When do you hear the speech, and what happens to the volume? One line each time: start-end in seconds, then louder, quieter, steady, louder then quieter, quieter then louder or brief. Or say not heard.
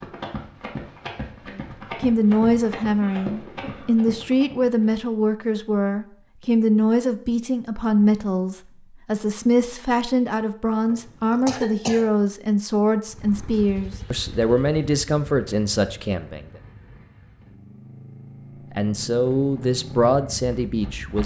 1.6-16.4 steady
18.7-21.2 brief.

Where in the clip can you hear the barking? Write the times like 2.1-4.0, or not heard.
not heard.